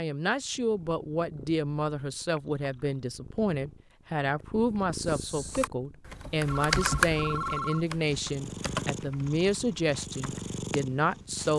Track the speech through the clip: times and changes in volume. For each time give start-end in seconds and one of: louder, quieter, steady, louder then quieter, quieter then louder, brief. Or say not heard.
0.0-11.5 steady.